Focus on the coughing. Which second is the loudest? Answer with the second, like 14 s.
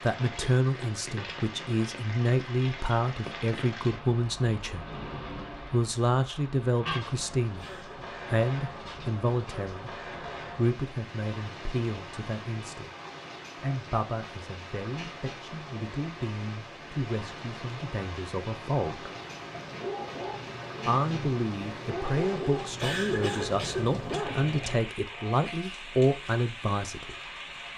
23 s.